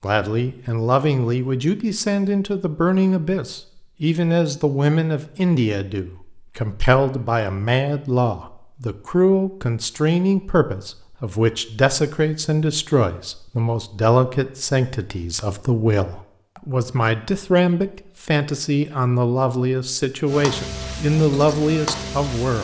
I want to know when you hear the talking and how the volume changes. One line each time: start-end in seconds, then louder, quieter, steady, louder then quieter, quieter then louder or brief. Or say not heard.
0.0-22.5 steady.